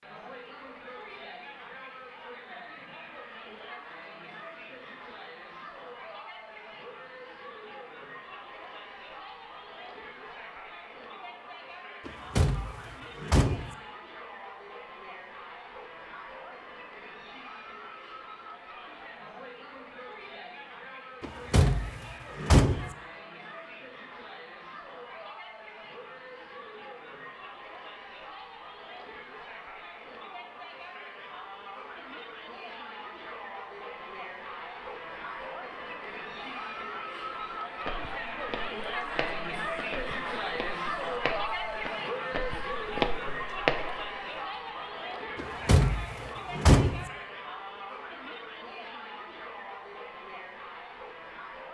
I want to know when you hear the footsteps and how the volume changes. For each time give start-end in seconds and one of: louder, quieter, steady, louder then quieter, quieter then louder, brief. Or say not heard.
37.9-44.3 louder.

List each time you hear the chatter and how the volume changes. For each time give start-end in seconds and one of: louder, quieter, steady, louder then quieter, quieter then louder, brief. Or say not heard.
0.0-51.6 louder.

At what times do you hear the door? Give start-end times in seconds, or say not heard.
12.1-13.8, 21.2-22.9, 45.4-47.0.